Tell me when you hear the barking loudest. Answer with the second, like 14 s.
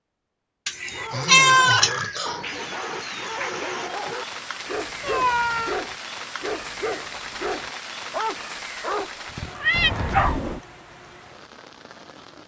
10 s.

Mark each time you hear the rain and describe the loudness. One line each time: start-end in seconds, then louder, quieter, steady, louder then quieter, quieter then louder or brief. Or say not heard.
2.4-12.4 quieter.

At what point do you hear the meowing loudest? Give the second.
1 s.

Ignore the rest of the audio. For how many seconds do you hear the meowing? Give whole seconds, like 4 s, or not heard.
3 s.